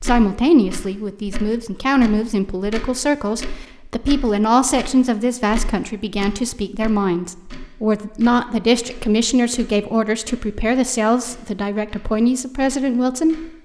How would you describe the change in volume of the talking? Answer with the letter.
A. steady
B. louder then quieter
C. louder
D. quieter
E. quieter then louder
A.